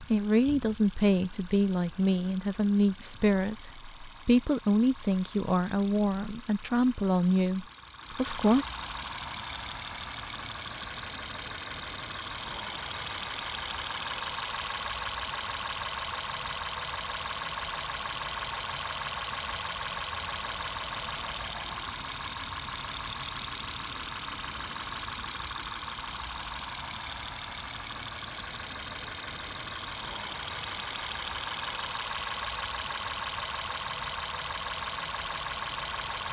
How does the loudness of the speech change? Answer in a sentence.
The volume of the speech stays about the same.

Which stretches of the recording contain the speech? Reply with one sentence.
The speech can be heard from 0.0 to 8.7 s.